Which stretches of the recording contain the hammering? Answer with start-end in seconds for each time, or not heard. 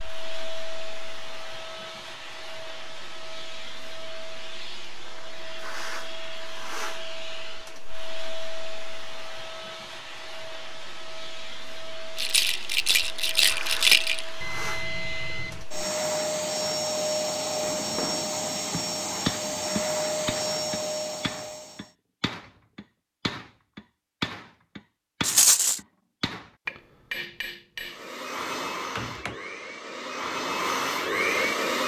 17.6-28.0, 28.9-29.4.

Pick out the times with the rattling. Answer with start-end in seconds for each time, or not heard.
12.2-14.2, 25.2-25.8.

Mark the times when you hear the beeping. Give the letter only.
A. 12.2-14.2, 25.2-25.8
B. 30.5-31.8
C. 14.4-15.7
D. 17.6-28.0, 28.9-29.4
C.